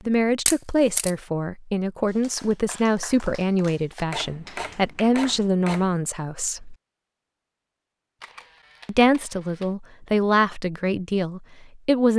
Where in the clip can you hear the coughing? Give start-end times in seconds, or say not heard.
not heard.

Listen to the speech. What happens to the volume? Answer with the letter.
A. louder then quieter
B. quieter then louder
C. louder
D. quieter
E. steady
E.